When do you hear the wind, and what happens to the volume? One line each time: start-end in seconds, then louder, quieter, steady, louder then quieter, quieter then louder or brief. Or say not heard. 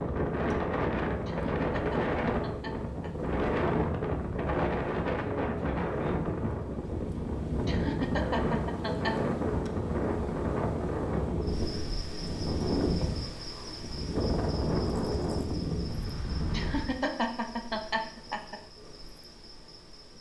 0.0-17.0 steady.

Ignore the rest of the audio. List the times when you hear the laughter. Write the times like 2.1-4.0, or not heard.
1.2-3.3, 7.6-9.2, 16.5-18.6.